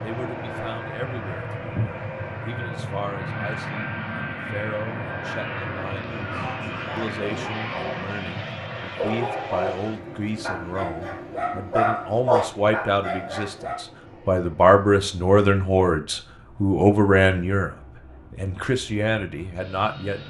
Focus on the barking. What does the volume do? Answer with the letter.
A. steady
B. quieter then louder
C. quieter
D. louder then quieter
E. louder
E.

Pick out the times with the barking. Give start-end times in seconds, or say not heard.
6.0-13.8.